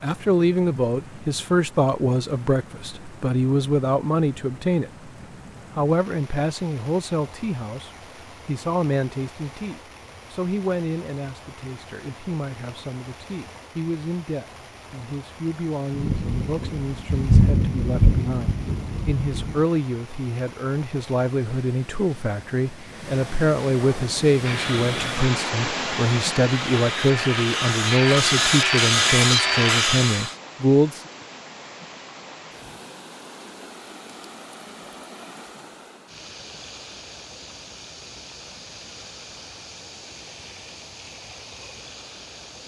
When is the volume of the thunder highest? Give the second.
17 s.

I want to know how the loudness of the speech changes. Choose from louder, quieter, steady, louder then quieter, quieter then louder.
quieter then louder.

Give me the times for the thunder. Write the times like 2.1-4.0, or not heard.
15.9-19.6.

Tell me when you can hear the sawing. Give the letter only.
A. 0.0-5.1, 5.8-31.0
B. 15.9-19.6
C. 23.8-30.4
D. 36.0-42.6
C.